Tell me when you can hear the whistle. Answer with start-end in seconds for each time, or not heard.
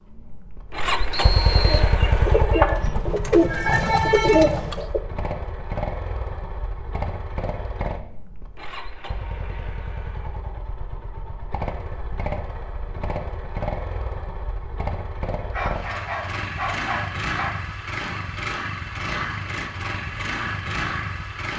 1.1-1.9.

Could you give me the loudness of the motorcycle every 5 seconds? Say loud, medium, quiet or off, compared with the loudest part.
loud, medium, medium, loud, loud.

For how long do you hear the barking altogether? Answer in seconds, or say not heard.
2 s.